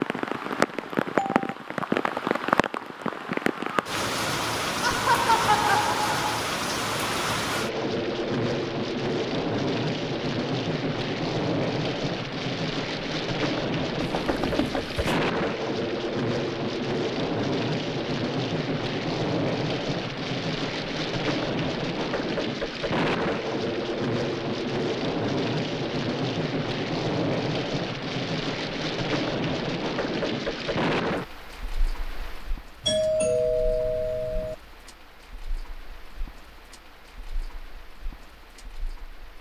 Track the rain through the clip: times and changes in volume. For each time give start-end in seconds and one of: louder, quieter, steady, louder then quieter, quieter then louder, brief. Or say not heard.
0.0-39.3 quieter.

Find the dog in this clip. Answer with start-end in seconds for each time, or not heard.
not heard.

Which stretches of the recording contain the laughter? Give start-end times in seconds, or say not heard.
4.8-6.3.